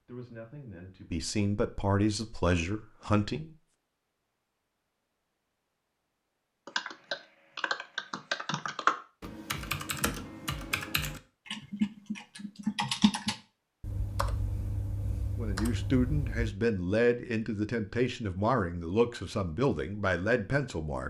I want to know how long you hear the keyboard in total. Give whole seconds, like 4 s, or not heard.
10 s.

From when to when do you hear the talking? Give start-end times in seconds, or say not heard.
0.1-3.5, 15.3-21.0.